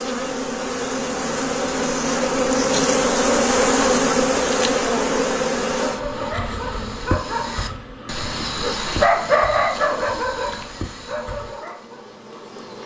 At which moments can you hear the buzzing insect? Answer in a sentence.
You can hear the buzzing insect from 0.0 to 12.8 s.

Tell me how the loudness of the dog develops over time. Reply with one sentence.
The loudness of the dog goes up, then down.